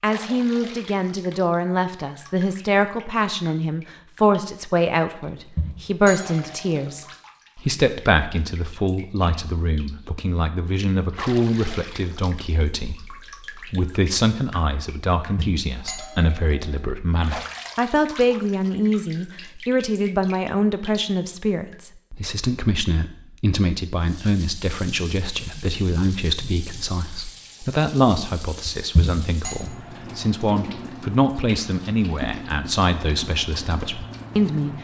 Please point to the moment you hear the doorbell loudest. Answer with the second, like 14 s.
29 s.